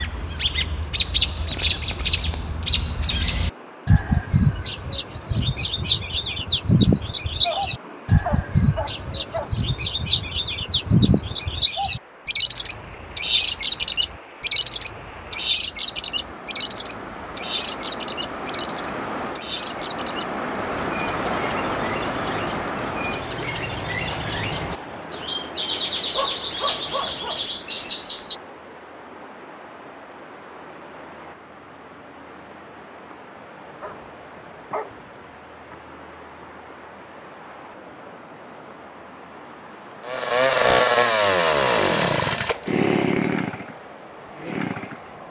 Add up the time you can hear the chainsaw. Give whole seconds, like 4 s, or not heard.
5 s.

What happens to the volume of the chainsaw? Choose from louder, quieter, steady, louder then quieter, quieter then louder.
quieter.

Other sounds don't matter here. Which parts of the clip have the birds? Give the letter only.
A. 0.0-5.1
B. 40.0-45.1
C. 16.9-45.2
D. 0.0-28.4
D.